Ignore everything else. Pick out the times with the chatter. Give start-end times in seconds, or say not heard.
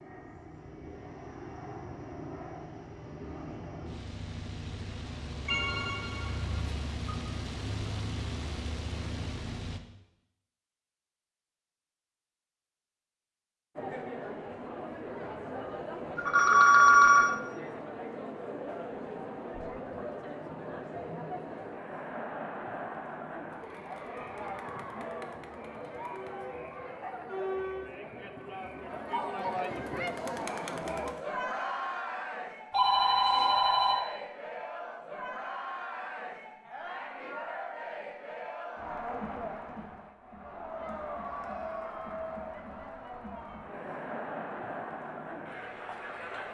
13.8-46.5.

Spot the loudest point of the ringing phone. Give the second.
17 s.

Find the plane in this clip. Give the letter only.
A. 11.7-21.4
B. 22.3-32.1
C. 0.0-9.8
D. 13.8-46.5
C.